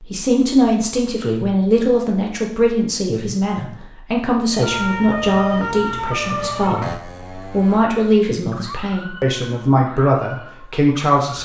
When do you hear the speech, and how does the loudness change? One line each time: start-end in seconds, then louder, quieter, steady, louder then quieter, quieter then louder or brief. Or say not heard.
0.0-11.4 steady.